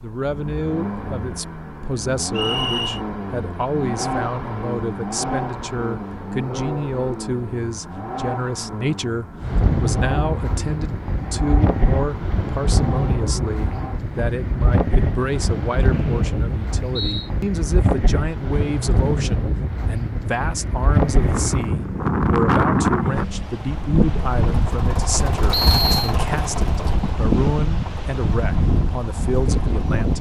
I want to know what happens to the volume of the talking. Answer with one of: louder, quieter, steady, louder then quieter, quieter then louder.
steady.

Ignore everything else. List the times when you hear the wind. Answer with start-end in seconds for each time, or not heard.
9.4-30.1.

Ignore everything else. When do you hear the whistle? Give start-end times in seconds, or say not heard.
2.4-3.0, 15.9-17.3, 25.5-26.1.